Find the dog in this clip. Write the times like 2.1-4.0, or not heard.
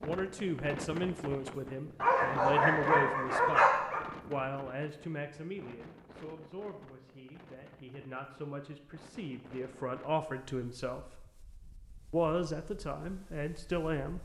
2.0-4.0.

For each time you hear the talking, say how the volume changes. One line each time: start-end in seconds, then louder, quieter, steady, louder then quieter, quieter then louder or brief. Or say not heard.
0.0-11.0 quieter then louder
12.1-14.1 brief.